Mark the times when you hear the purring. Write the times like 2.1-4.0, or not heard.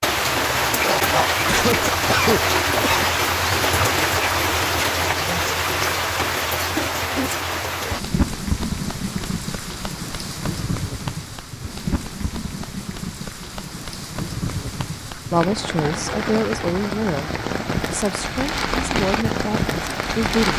not heard.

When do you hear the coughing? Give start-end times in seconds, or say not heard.
1.4-3.0.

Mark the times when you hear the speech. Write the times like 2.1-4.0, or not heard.
15.3-20.5.